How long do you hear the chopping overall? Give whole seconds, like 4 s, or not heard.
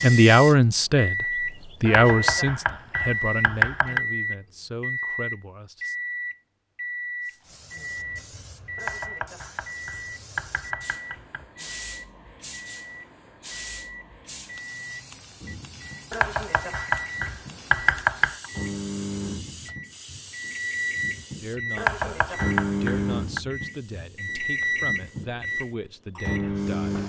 9 s.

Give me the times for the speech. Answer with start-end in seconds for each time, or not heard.
0.0-6.0, 21.4-27.0.